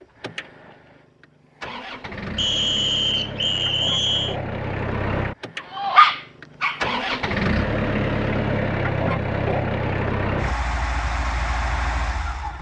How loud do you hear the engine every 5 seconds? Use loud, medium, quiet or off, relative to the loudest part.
medium, loud, loud.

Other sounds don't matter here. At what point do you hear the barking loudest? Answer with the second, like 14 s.
6 s.